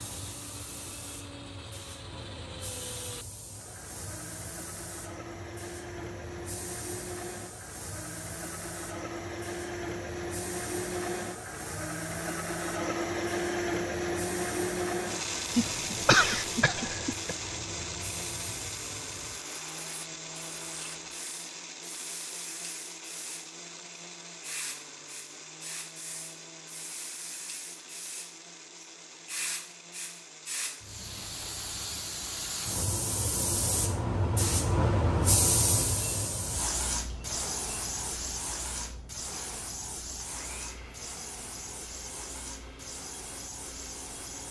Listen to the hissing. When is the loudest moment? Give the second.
35 s.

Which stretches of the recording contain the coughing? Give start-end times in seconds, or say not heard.
15.5-17.4.